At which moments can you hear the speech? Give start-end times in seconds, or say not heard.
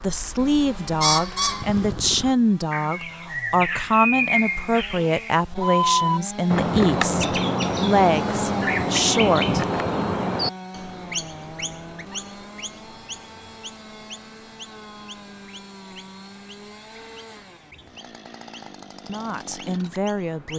0.0-9.7, 19.1-20.5.